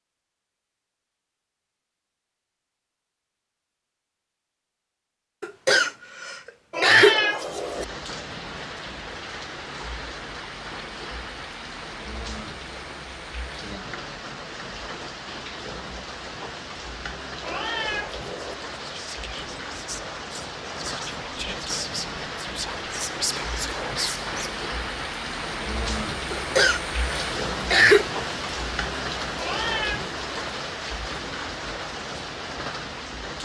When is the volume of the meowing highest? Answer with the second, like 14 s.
7 s.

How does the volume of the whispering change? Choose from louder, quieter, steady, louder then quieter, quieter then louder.
louder.